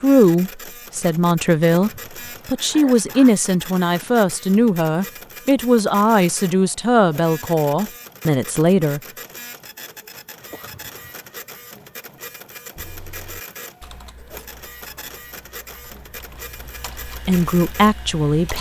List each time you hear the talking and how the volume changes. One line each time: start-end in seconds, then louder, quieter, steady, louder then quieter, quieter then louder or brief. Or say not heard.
0.0-9.0 steady
17.2-18.5 brief.